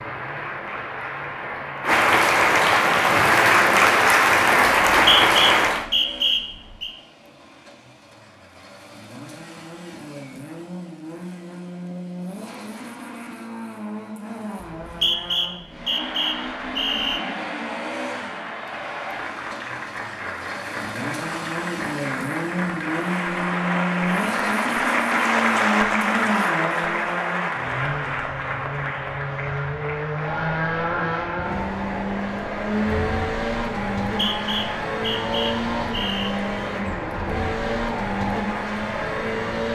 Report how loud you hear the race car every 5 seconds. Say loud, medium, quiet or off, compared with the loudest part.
quiet, quiet, medium, medium, loud, loud, loud, loud.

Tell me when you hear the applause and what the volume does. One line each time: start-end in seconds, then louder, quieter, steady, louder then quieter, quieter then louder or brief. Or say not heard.
0.0-5.8 louder
15.8-39.6 louder then quieter.